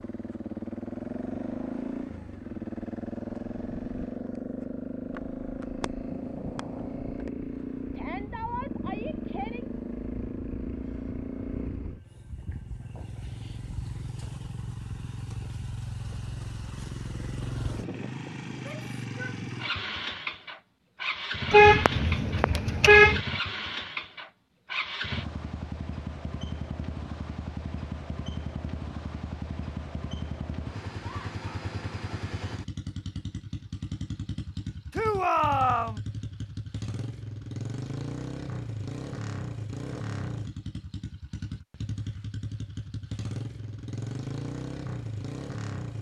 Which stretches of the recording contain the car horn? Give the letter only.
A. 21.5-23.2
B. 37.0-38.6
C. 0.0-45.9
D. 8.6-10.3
A.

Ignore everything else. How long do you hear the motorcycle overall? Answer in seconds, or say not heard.
46 s.